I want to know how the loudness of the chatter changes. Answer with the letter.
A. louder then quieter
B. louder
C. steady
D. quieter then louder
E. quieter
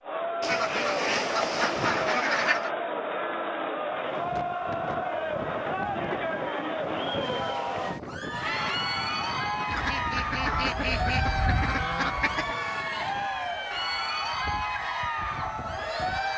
C.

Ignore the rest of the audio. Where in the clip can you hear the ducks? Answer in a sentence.
The ducks can be heard from 0.4 to 2.7 s and from 9.7 to 12.6 s.